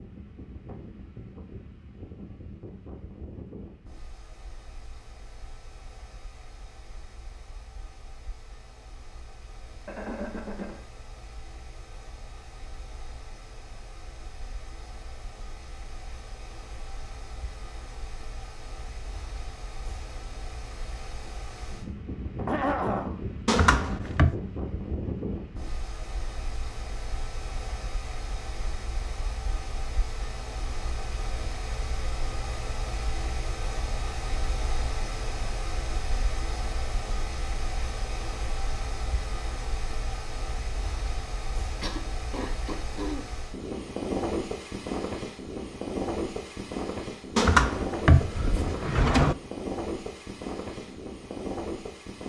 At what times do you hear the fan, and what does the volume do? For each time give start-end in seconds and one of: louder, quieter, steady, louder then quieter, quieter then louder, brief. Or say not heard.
0.0-52.2 louder.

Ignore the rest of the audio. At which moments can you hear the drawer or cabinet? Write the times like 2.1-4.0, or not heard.
23.4-24.4, 47.4-49.4.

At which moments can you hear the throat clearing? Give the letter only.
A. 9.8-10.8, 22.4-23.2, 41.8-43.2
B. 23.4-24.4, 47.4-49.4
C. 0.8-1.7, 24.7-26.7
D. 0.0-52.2
A.